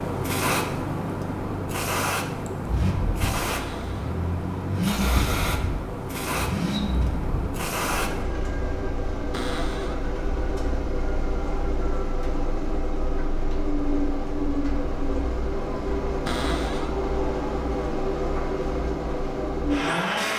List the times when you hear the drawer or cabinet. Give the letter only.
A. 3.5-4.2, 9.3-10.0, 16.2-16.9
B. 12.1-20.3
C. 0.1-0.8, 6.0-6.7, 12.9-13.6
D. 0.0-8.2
A.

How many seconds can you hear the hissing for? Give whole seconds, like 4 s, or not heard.
8 s.